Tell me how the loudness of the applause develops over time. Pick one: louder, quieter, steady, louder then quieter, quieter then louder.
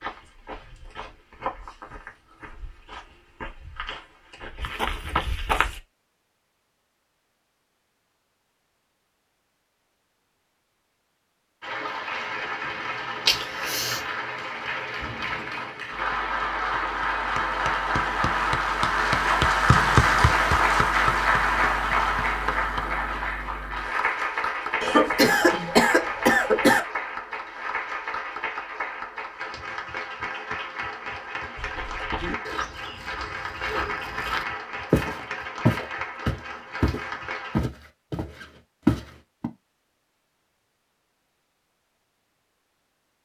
louder then quieter.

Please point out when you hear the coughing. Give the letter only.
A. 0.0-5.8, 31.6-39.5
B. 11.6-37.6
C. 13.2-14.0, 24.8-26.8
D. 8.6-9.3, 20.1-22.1
C.